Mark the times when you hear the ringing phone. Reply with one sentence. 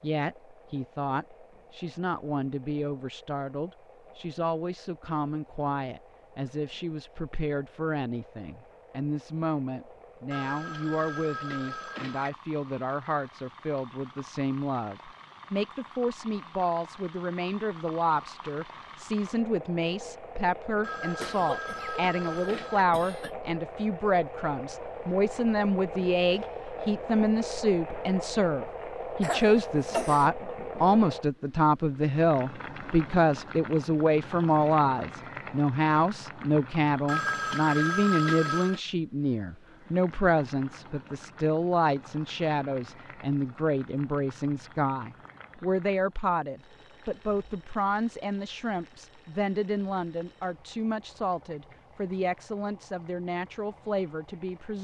You can hear the ringing phone from 10.3 to 12.3 s, from 20.8 to 22.9 s and from 37.0 to 38.8 s.